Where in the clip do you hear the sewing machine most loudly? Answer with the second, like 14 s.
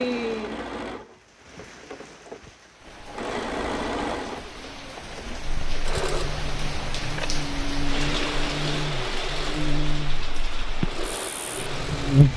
4 s.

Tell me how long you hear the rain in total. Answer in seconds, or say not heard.
12 s.